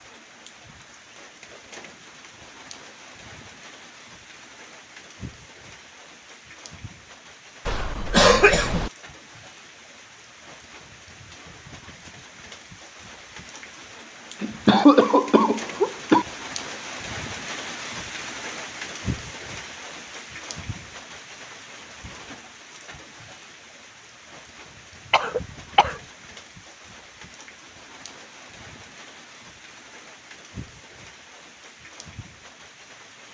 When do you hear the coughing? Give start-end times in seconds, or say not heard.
7.7-8.9, 14.4-16.2, 25.1-25.9.